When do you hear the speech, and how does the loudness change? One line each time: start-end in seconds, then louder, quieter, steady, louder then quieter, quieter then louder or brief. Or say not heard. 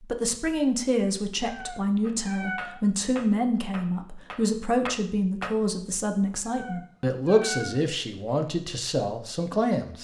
0.0-9.9 steady.